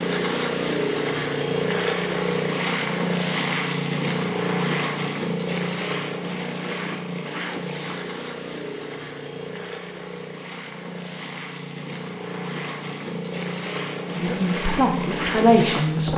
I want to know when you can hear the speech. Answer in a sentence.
You can hear the speech from 14.2 to 16.1 s.